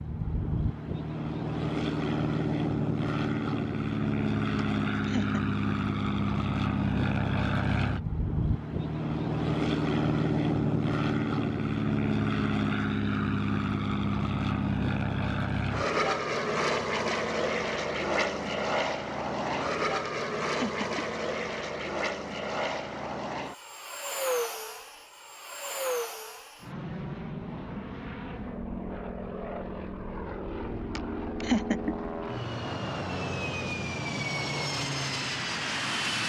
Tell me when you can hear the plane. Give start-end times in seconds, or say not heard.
0.0-36.2.